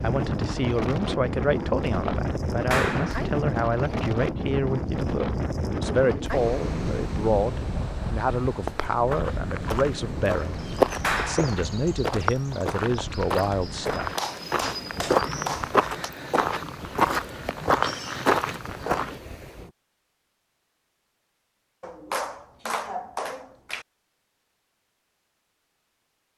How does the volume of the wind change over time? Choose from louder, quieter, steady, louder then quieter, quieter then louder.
quieter.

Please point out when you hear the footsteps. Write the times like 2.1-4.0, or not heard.
8.4-19.2.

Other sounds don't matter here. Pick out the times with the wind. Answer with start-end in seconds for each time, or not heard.
0.0-19.8.